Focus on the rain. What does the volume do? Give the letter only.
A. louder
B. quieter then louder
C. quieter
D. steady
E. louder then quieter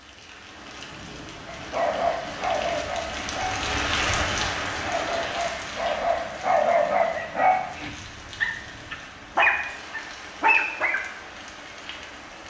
E.